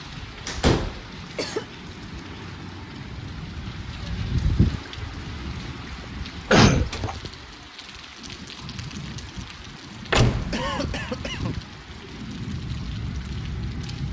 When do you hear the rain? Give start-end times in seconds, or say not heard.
0.0-14.0.